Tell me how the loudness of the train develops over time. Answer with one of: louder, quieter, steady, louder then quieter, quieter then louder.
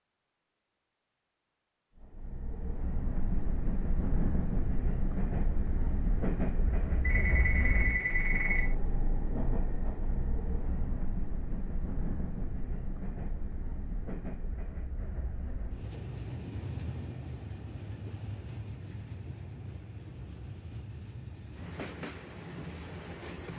quieter.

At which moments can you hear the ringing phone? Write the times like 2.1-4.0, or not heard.
7.0-8.8.